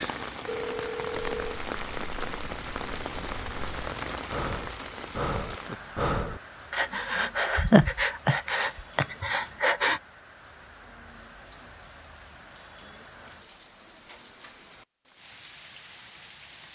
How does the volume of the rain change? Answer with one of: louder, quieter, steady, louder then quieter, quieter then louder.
quieter.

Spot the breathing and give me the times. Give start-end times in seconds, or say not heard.
1.4-10.0.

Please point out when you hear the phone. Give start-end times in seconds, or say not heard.
0.5-1.6.